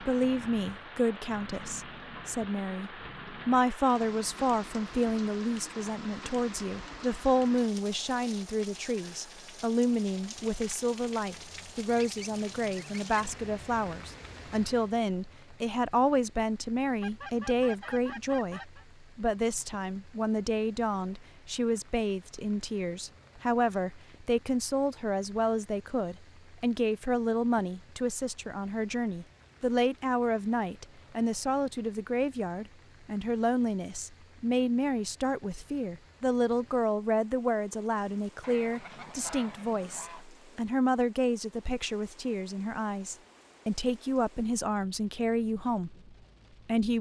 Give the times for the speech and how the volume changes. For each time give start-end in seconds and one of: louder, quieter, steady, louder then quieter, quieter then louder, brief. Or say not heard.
0.0-46.9 steady.